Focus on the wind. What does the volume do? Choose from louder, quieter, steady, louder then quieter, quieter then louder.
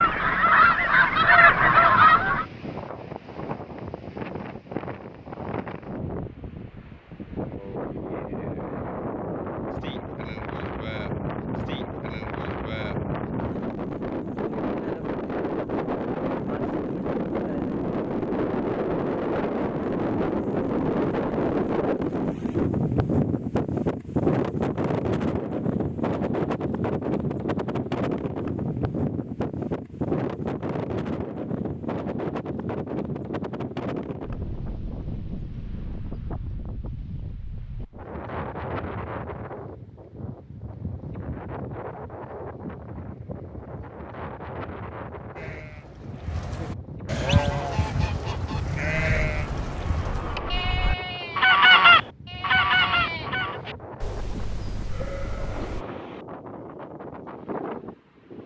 louder then quieter.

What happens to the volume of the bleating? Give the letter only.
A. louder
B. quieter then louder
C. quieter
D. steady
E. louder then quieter
C.